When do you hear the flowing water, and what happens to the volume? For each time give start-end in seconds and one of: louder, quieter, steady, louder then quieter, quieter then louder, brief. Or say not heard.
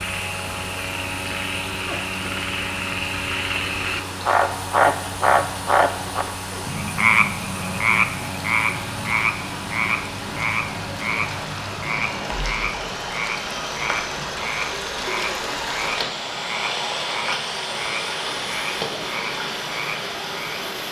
0.1-20.8 louder.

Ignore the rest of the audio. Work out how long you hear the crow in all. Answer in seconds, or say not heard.
not heard.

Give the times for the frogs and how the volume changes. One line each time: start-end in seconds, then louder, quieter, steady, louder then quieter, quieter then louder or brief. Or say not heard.
0.0-20.6 louder then quieter.